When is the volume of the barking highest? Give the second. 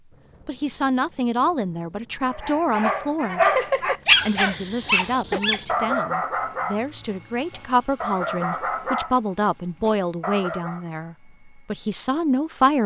4 s.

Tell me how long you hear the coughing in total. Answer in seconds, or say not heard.
2 s.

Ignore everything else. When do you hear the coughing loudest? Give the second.
4 s.